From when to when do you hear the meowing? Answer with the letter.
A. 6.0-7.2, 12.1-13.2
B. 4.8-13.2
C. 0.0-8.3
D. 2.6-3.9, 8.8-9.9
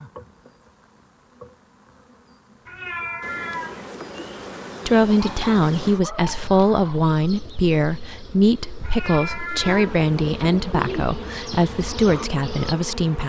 D.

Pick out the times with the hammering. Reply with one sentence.
The hammering can't be heard in this clip.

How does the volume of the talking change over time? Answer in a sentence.
The volume of the talking stays about the same.